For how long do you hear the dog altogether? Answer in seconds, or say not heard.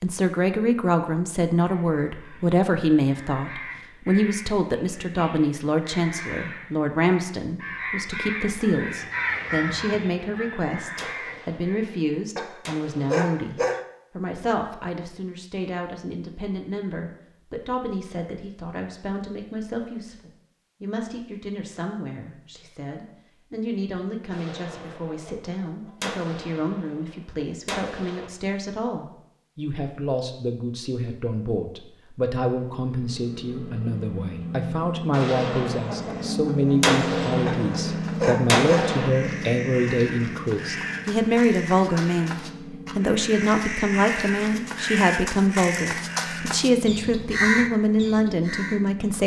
3 s.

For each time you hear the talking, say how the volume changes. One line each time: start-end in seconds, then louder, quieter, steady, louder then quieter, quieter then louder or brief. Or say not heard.
0.0-49.2 quieter then louder.